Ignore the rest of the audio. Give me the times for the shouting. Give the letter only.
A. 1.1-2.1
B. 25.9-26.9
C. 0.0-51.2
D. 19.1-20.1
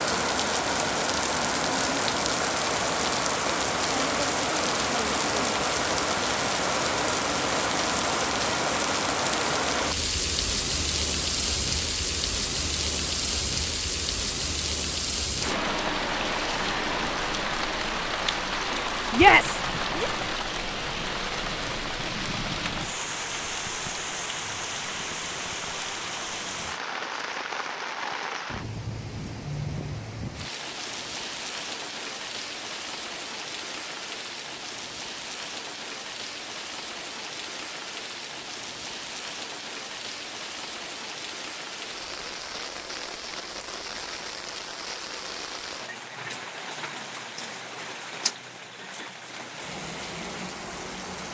D.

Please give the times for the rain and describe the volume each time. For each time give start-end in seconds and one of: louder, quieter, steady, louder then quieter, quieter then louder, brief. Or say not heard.
0.0-51.2 quieter.